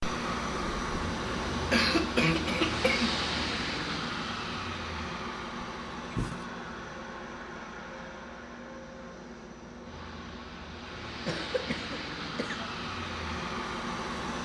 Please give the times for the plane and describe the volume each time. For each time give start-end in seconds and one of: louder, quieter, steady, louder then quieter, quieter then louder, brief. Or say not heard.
0.0-14.3 quieter then louder.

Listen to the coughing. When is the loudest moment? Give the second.
2 s.